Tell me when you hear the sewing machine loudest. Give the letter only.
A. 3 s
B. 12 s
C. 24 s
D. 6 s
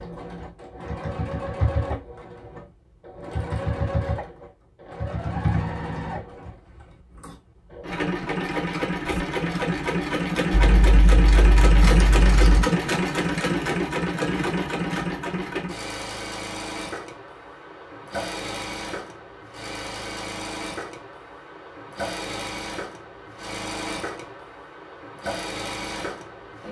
B.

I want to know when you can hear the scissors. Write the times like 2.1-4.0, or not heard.
10.5-12.7.